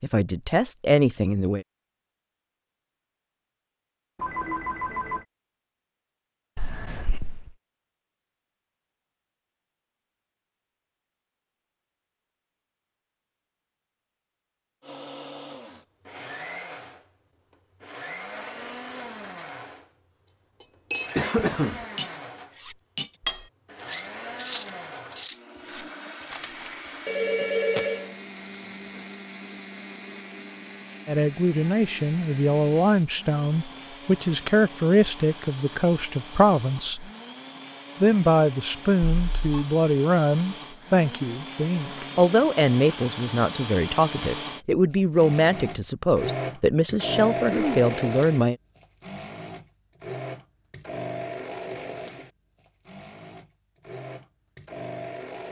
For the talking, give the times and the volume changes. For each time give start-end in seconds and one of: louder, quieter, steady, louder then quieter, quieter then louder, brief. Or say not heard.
0.0-1.6 brief
31.1-37.1 steady
38.0-48.5 steady.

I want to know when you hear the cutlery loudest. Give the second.
23 s.